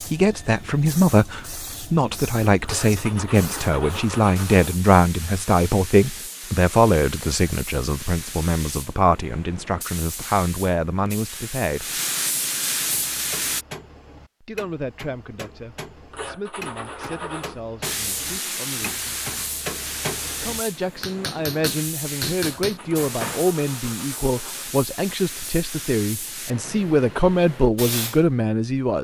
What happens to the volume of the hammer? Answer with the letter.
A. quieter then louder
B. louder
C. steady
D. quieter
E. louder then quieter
B.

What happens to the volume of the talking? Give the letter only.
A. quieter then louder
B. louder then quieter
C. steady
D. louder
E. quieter
A.